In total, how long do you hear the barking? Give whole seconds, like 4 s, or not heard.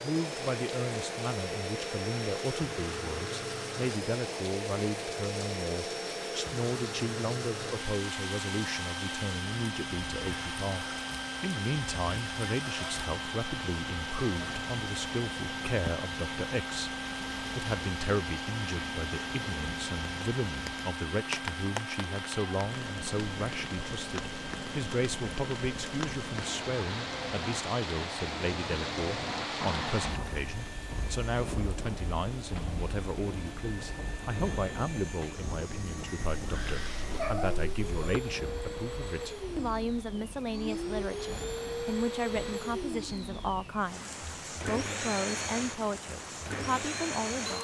not heard.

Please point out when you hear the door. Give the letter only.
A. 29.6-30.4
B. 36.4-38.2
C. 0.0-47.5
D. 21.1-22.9
A.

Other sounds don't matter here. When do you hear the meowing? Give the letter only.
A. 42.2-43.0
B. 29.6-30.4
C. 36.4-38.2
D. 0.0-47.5
C.